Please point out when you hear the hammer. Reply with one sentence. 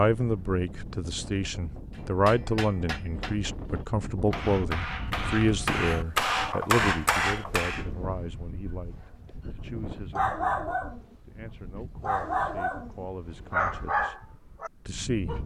The hammer can be heard from 1.9 to 7.8 s.